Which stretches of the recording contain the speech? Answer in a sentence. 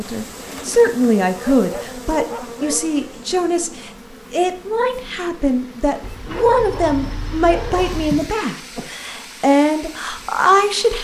The speech can be heard from 0.0 to 11.0 s.